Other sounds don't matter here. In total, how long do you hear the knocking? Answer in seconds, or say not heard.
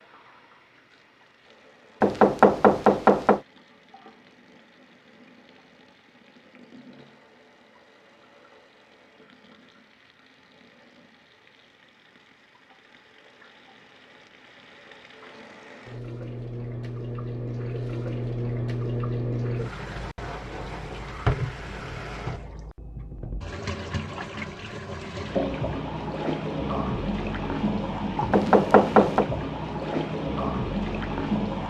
2 s.